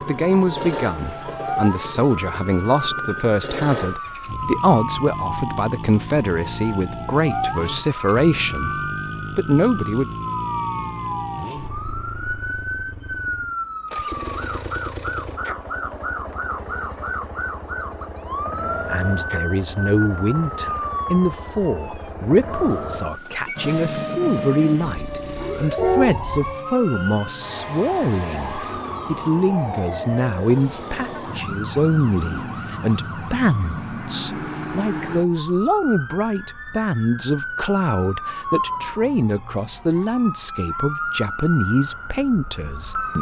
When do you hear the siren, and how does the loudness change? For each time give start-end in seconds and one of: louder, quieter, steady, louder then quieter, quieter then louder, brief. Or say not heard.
0.0-43.1 steady.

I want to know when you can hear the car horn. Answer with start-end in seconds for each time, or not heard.
25.8-26.5.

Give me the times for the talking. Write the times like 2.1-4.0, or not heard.
0.1-10.1, 18.9-43.1.